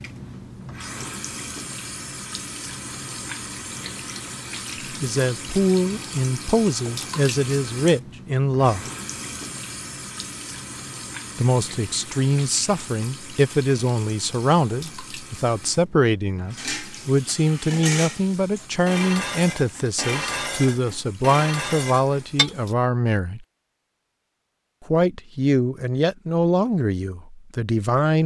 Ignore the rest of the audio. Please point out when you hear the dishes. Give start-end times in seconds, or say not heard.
16.5-22.6.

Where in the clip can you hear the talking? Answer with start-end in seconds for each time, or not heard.
4.9-8.8, 11.3-23.4, 24.9-28.2.